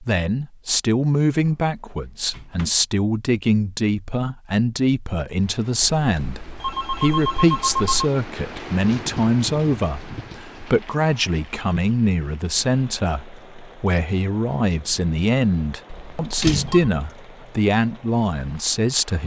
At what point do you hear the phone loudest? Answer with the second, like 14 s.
8 s.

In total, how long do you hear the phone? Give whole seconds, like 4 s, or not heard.
3 s.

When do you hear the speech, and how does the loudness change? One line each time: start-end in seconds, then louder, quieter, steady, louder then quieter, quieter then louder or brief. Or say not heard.
0.0-19.2 steady.